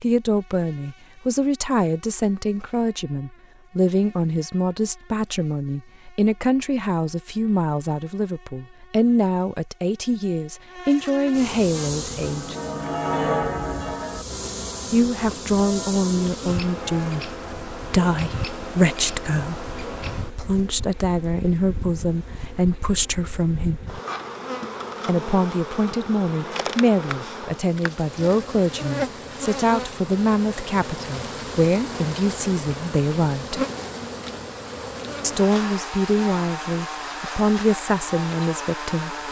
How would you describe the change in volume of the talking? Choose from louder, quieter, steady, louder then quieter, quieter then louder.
steady.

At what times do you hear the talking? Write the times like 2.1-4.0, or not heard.
0.0-12.6, 14.9-23.9, 25.1-33.6, 35.2-39.1.